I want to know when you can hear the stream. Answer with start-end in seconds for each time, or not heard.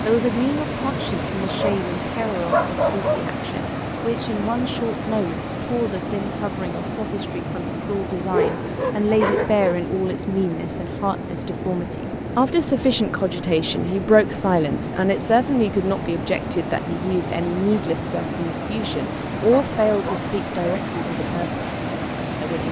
0.0-22.6.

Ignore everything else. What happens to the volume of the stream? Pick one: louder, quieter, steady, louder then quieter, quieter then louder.
steady.